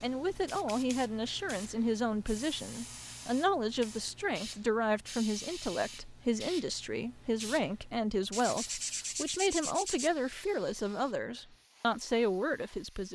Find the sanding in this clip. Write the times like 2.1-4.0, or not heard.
8.3-10.1.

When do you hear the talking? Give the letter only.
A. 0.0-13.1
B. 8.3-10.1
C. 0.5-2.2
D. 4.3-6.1
A.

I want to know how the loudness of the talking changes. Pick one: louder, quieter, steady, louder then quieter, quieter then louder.
steady.